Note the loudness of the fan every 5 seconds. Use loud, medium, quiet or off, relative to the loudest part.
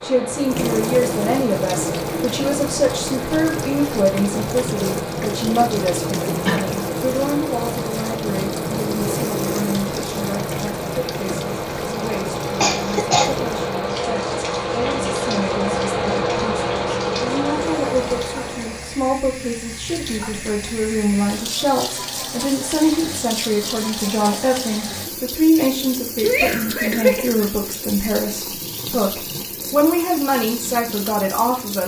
medium, medium, loud, loud, off, off, off.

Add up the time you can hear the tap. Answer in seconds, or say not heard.
32 s.